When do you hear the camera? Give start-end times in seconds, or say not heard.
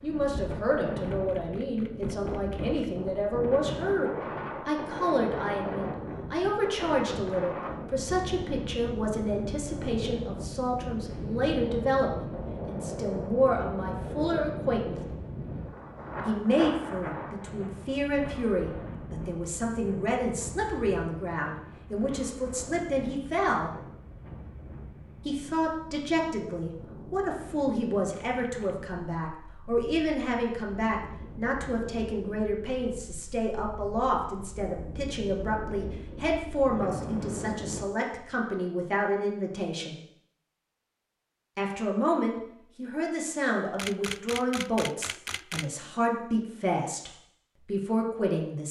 1.0-3.0, 28.1-28.8, 43.8-45.7.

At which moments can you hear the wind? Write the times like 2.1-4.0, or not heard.
0.0-37.9.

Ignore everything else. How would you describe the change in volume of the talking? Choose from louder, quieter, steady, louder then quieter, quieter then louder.
steady.